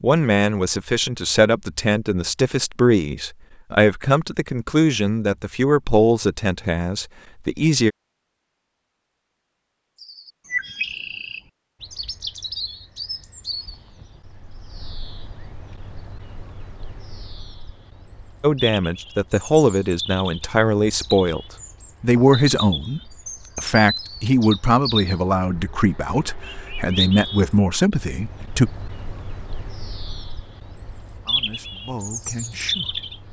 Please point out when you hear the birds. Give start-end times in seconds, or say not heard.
9.9-33.2.